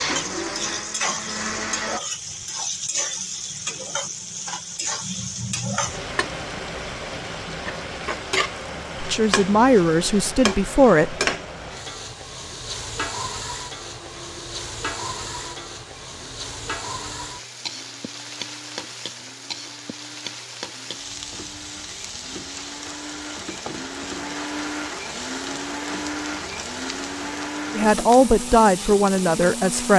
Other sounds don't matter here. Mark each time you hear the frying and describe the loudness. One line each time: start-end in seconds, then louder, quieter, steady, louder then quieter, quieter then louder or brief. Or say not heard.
0.0-29.9 quieter.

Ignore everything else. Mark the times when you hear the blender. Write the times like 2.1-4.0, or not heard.
0.0-2.0, 13.8-29.9.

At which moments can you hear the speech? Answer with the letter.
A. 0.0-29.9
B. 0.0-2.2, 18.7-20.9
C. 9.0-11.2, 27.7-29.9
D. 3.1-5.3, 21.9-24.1
C.